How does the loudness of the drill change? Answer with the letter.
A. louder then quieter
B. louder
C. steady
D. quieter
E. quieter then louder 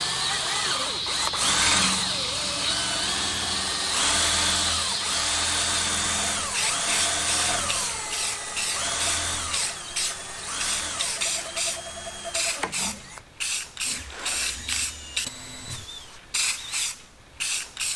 D.